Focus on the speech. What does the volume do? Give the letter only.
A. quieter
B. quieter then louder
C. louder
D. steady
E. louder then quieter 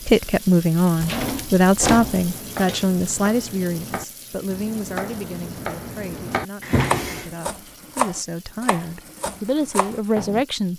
B.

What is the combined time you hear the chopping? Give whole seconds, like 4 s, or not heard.
8 s.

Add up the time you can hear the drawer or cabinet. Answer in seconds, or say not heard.
2 s.